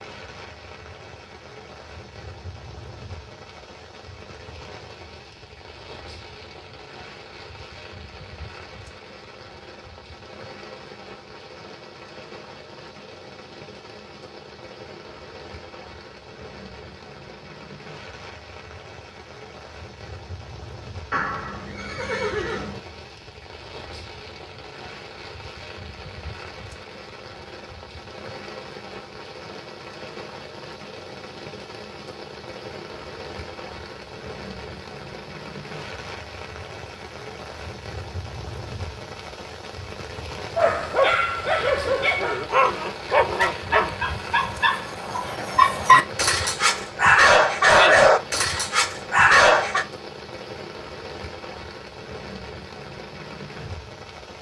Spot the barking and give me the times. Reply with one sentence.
You can hear the barking from 40.5 to 49.9 s.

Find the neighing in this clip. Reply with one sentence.
The neighing can be heard from 21.1 to 22.8 s.